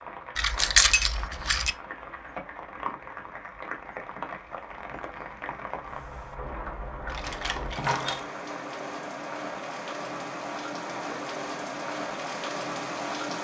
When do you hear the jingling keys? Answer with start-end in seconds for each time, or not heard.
0.3-1.7, 7.0-8.2.